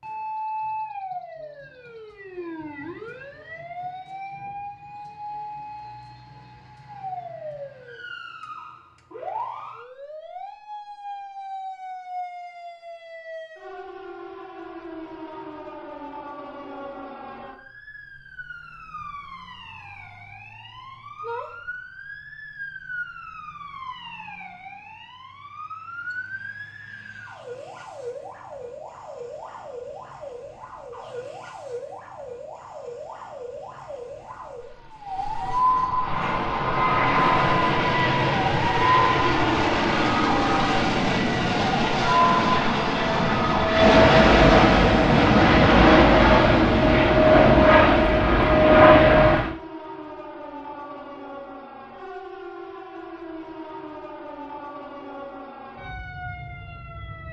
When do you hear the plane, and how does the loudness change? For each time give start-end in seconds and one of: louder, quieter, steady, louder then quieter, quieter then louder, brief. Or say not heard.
36.0-49.5 louder.